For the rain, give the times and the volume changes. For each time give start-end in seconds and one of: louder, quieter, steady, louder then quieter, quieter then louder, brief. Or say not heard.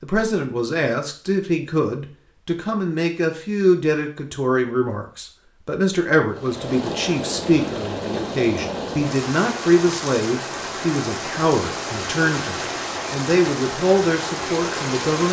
6.3-15.2 steady.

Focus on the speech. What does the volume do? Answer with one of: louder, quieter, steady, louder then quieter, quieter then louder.
steady.